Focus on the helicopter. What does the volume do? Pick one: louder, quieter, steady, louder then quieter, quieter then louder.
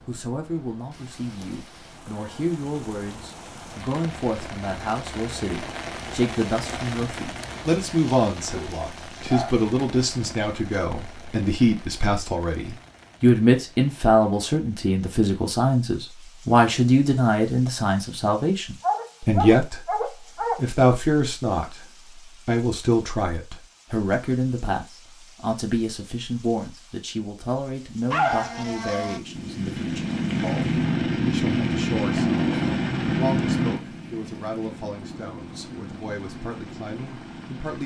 quieter.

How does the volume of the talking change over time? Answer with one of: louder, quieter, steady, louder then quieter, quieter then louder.
louder then quieter.